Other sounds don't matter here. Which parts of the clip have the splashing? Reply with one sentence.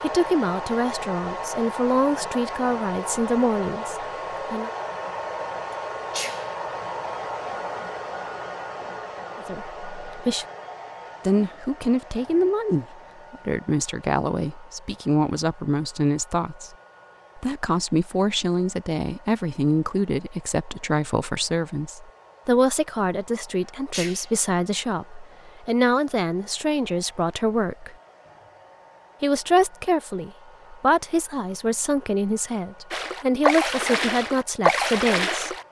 You can hear the splashing from 32.9 to 35.6 s.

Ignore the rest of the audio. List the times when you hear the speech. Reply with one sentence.
The speech can be heard from 0.0 to 4.7 s, from 9.4 to 10.4 s, from 11.2 to 16.8 s, from 17.4 to 27.9 s and from 29.2 to 35.5 s.